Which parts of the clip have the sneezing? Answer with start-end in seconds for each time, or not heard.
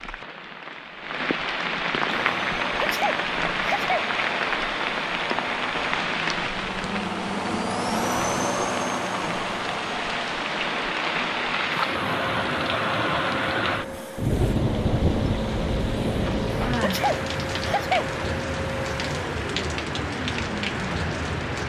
2.8-4.0, 16.8-18.1.